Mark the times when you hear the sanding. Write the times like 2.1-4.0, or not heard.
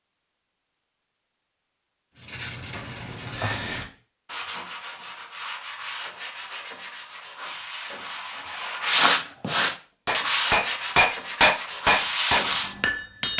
2.1-12.8.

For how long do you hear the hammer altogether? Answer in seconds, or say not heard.
3 s.